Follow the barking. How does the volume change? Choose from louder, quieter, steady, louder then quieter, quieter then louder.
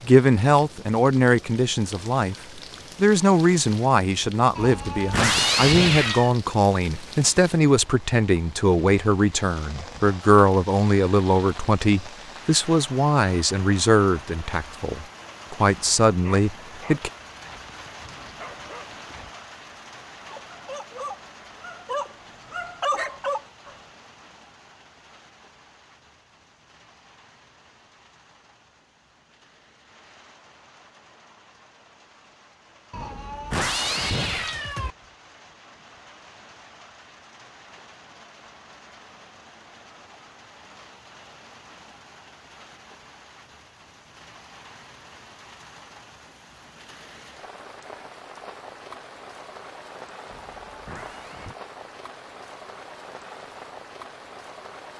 louder.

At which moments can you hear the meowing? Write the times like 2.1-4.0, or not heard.
4.5-6.3, 32.9-35.0, 50.2-51.5.